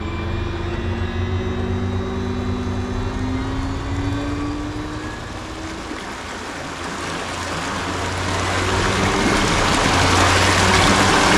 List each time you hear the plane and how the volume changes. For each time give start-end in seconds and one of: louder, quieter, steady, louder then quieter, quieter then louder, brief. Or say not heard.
0.0-11.3 quieter then louder.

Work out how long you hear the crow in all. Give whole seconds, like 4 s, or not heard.
not heard.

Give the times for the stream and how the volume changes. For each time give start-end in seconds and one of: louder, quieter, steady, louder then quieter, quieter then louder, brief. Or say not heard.
0.0-11.3 louder.